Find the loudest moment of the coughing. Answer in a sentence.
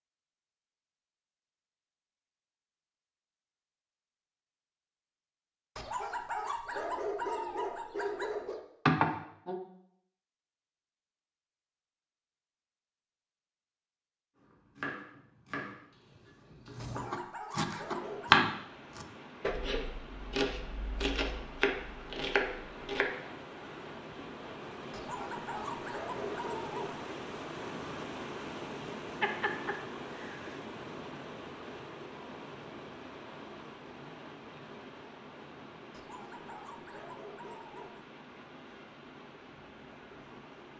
The loudest moment of the coughing is at 9 seconds.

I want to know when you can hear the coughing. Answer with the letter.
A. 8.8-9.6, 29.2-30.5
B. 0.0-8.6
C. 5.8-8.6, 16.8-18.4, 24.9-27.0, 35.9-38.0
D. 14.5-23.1
A.